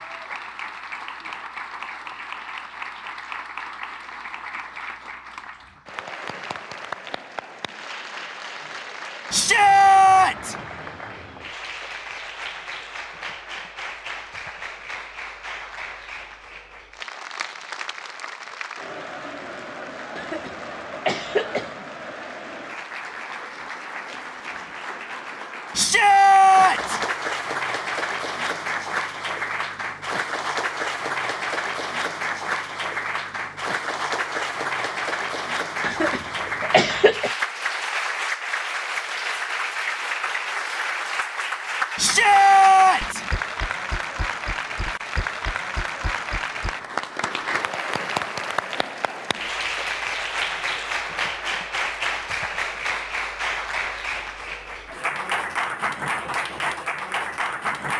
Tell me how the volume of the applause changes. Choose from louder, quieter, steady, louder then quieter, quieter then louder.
louder.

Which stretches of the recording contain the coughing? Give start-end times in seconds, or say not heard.
20.1-21.9, 35.8-37.3.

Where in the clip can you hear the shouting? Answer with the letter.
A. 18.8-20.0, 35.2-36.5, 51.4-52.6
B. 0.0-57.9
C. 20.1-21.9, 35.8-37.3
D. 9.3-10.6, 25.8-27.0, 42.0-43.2
D.